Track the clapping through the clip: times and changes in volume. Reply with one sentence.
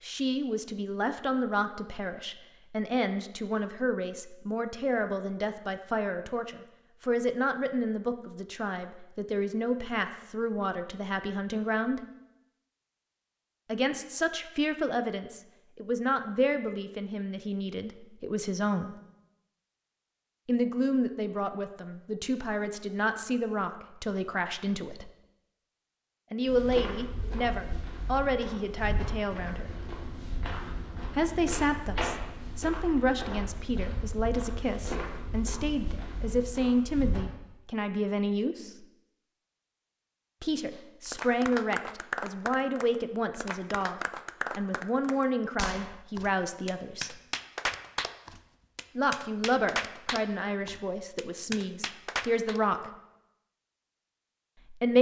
You can hear the clapping from 41.0 to 52.6 s, at a steady volume.